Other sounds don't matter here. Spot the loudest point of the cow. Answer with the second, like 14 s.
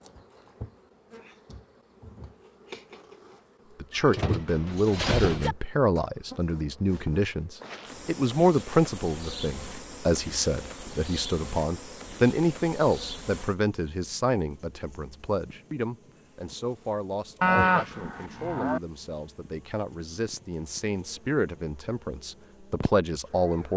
18 s.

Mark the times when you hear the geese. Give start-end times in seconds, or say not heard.
not heard.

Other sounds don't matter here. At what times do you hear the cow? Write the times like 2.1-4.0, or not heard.
17.4-18.8.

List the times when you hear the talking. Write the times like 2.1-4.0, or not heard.
3.8-23.7.